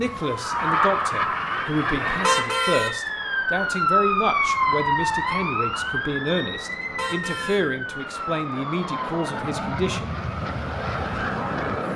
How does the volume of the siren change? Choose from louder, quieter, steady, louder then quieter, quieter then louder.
louder then quieter.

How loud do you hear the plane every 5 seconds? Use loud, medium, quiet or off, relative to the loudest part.
loud, medium, loud.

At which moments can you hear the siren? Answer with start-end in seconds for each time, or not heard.
0.0-11.8.